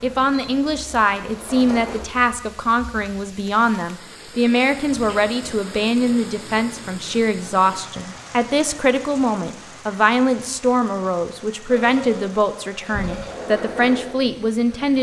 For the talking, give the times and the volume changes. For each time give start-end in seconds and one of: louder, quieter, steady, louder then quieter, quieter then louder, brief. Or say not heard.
0.0-14.9 steady.